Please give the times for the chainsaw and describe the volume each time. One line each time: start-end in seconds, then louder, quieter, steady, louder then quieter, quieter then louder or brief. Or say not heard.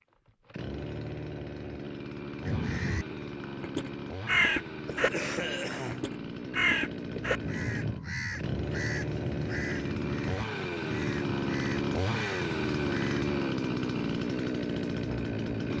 0.2-15.7 louder.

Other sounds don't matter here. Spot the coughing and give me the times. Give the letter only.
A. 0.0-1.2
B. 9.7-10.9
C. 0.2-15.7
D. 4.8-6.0
D.